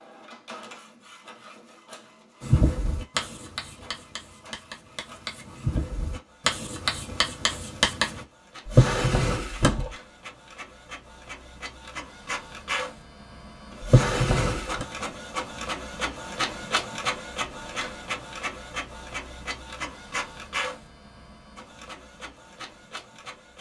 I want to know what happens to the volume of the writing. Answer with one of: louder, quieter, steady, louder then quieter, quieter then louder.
quieter then louder.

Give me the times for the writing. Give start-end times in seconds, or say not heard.
2.4-8.2.